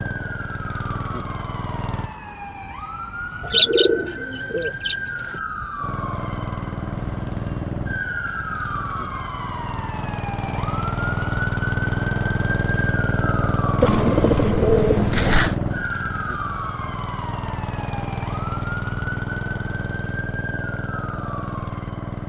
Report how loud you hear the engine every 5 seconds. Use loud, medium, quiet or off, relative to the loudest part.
medium, medium, loud, loud, medium.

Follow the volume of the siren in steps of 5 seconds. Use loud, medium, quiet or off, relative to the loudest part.
loud, loud, loud, loud, medium.